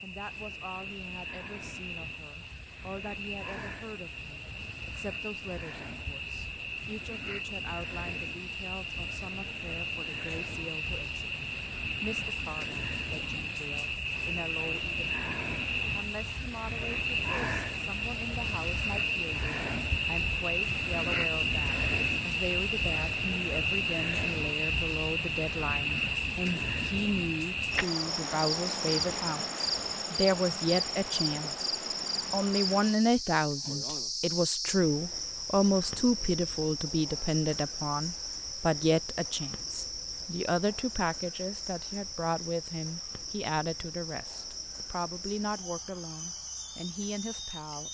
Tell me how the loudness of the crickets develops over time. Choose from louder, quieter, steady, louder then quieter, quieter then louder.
louder then quieter.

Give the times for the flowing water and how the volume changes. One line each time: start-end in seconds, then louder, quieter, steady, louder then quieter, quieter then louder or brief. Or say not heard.
not heard.